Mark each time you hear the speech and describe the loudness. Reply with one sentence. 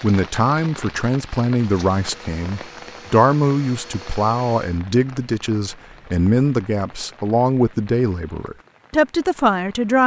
You can hear the speech from 0.0 to 10.0 s, at a steady volume.